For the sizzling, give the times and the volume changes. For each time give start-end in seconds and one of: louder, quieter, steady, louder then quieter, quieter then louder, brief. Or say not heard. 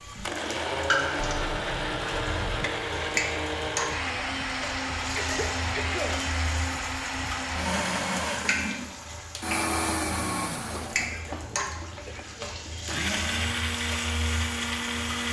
0.0-15.2 quieter.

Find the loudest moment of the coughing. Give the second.
6 s.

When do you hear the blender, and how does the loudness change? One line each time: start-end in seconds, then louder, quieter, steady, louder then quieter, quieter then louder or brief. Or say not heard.
0.0-15.2 steady.